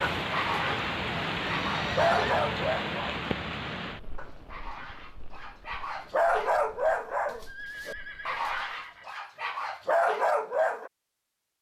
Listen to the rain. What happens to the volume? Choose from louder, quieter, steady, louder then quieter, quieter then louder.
quieter.